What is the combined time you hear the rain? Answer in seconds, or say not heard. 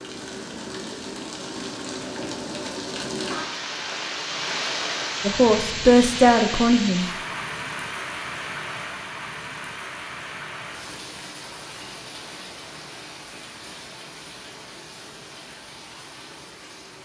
17 s.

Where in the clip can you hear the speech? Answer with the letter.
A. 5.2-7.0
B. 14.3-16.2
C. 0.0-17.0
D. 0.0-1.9
A.